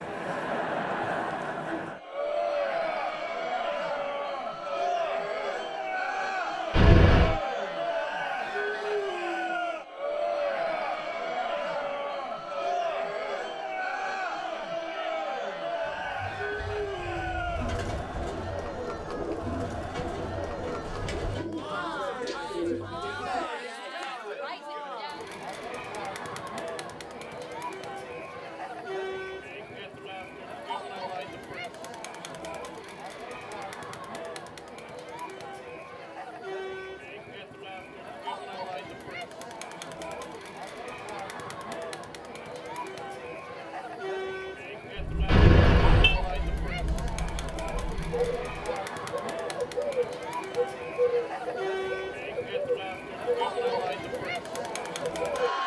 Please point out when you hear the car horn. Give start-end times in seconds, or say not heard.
6.7-7.4, 45.2-46.1.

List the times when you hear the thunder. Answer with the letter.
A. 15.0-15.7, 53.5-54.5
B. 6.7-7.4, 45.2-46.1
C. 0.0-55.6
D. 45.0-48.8
D.